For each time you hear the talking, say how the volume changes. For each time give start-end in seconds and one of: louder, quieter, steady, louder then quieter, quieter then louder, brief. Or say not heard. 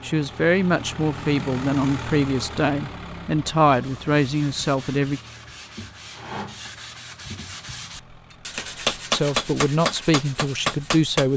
0.0-5.2 steady
9.1-11.3 brief.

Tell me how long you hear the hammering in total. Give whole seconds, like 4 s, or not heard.
3 s.